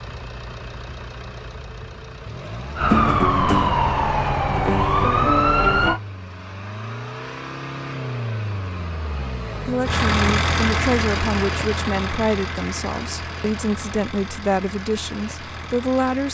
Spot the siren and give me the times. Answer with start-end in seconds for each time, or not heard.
2.8-6.0.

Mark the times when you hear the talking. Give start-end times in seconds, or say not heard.
9.7-16.2.